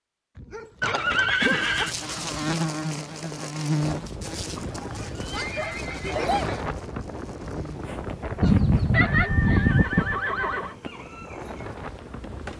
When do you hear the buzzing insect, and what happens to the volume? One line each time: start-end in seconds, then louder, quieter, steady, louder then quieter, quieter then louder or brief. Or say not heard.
1.4-12.5 quieter.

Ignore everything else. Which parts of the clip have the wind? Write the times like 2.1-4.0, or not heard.
3.8-12.5.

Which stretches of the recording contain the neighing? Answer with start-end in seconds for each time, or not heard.
0.8-1.9, 5.3-6.7, 8.9-10.8.